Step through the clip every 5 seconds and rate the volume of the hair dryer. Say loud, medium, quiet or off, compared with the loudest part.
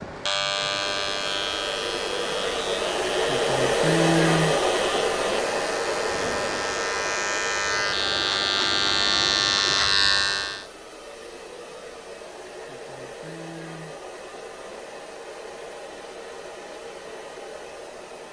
loud, medium, quiet, quiet.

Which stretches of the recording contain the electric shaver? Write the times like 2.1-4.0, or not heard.
0.0-10.7.